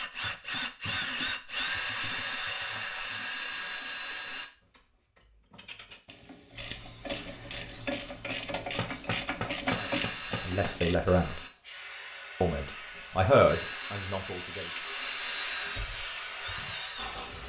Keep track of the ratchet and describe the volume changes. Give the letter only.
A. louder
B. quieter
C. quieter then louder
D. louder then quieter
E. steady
A.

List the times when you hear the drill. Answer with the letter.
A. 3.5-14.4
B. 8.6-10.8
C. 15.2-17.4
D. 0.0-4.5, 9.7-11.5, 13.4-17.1
D.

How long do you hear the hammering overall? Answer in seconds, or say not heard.
2 s.